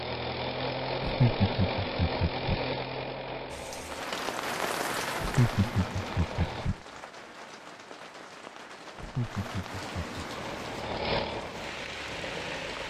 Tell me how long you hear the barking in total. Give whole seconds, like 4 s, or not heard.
not heard.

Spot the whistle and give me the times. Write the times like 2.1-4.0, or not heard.
not heard.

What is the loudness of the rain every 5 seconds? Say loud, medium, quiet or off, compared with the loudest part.
loud, medium, medium.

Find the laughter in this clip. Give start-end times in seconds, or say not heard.
1.0-2.6, 5.2-6.8, 8.9-10.2.